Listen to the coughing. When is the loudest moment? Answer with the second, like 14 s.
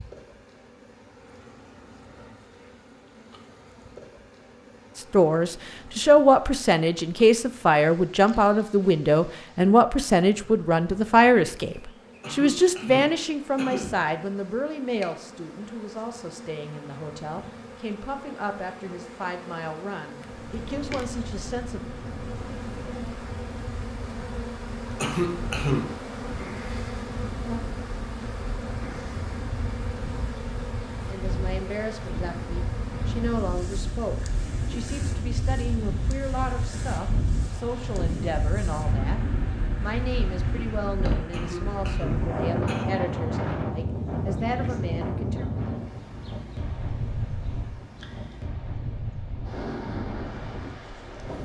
26 s.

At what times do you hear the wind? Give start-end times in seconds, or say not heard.
20.1-51.3.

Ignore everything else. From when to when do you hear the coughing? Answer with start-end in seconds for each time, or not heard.
12.2-14.0, 25.0-26.0, 41.3-42.9.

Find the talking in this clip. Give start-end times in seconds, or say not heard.
5.0-21.8, 31.1-39.2, 39.8-45.5.